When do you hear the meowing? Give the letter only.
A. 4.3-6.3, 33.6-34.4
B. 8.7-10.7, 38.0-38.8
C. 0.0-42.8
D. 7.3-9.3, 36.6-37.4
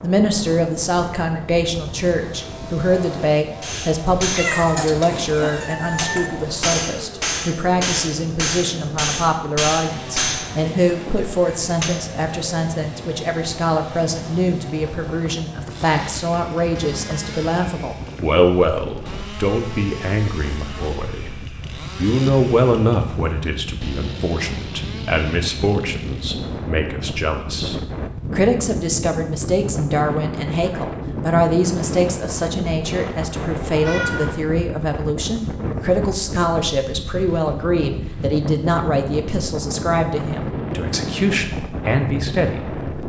A.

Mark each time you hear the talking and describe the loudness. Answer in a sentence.
The talking can be heard from 0.0 to 42.8 s, at a steady volume.